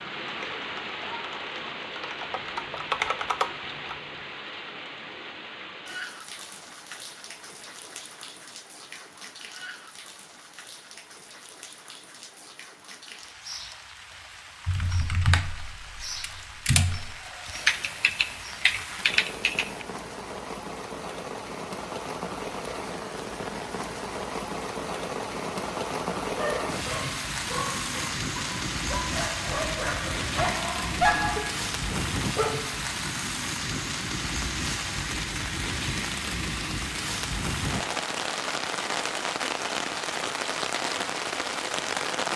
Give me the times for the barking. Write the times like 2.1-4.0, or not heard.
26.4-32.5.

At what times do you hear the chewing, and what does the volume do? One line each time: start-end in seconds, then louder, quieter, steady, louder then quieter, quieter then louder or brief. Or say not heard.
not heard.